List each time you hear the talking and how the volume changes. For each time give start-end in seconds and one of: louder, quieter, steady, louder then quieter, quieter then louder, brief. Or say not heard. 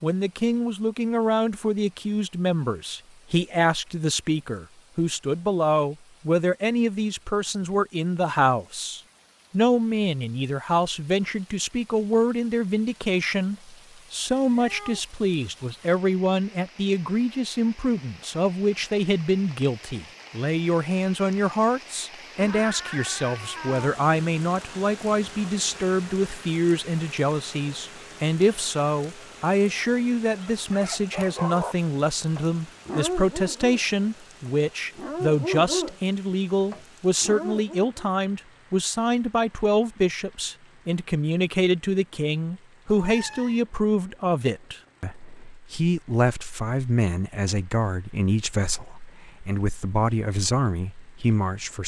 0.0-51.8 steady.